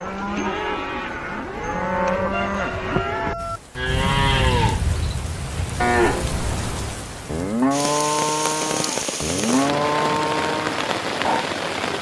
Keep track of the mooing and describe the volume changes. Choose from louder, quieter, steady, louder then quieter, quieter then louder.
steady.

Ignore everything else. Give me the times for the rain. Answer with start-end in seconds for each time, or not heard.
3.4-11.9.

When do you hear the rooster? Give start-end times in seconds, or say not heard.
1.6-3.6.